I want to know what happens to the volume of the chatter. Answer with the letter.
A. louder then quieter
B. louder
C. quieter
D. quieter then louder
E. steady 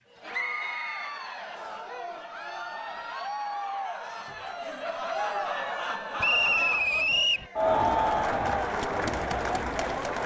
B.